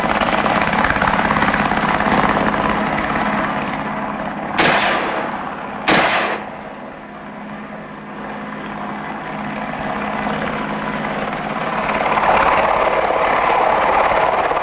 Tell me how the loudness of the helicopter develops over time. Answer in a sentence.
The loudness of the helicopter goes down, then up.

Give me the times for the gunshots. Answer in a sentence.
The gunshots can be heard from 4.5 to 6.4 s.